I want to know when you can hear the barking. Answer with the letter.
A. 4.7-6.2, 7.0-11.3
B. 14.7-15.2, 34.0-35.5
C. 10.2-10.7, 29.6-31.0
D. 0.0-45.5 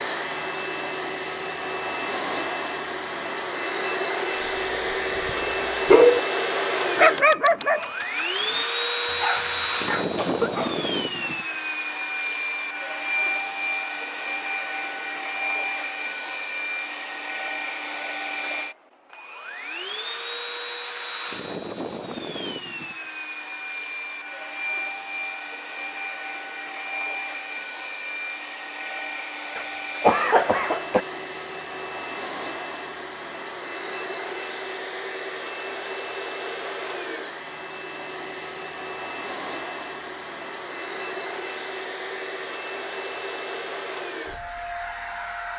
A.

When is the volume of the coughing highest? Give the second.
30 s.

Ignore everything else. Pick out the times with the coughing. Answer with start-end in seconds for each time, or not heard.
10.2-10.7, 29.6-31.0.